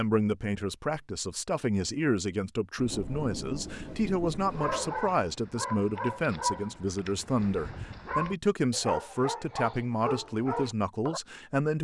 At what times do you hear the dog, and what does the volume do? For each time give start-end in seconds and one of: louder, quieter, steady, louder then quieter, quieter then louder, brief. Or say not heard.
4.5-11.2 steady.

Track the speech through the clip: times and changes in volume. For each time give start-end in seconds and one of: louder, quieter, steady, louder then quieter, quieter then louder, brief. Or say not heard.
0.0-11.7 steady.